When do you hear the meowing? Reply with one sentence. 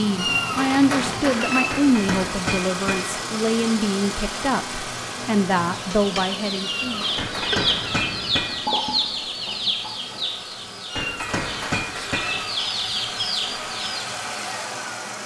You can hear the meowing from 0.1 to 1.8 s, from 6.6 to 8.1 s and from 10.8 to 12.6 s.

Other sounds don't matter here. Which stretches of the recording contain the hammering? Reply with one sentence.
The hammering can be heard from 1.7 to 3.2 s, from 7.2 to 8.7 s and from 10.9 to 12.4 s.